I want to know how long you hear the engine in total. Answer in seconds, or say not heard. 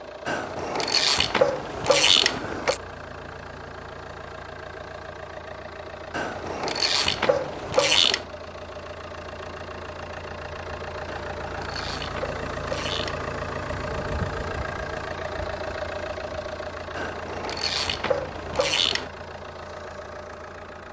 21 s.